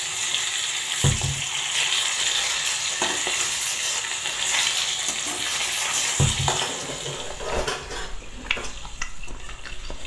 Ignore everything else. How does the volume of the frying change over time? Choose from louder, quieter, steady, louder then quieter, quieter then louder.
quieter.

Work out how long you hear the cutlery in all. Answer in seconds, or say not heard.
7 s.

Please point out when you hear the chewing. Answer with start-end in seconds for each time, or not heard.
7.4-10.0.